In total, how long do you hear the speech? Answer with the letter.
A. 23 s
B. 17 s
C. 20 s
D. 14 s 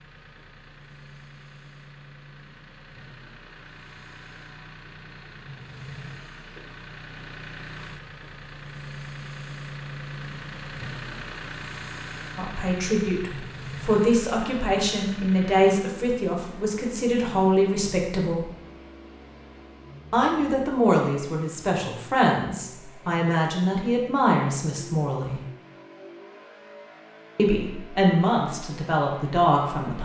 D.